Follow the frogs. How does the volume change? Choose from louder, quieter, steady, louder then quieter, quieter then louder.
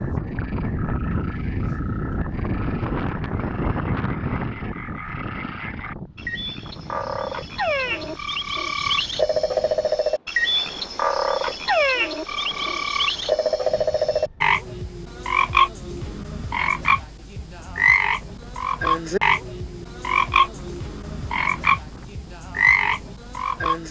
louder.